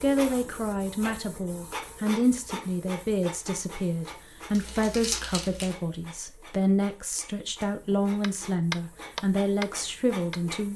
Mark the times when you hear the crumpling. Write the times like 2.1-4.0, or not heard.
4.5-5.8.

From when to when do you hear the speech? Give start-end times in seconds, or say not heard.
0.0-10.7.